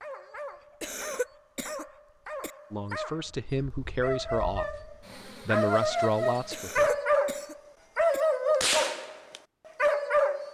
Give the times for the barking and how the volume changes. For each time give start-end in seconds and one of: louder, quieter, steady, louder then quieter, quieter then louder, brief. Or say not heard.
0.0-10.4 louder.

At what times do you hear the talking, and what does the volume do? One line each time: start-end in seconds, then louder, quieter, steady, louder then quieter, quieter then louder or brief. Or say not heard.
2.7-7.0 quieter then louder.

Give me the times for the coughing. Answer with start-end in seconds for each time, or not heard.
0.8-2.5, 6.5-8.2.